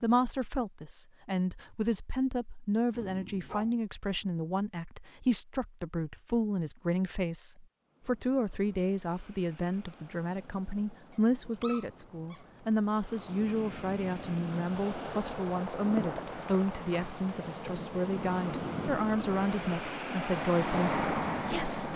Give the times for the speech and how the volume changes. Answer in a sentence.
You can hear the speech from 0.0 to 21.9 s, at a steady volume.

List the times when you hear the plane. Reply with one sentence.
You can hear the plane from 19.3 to 21.9 s.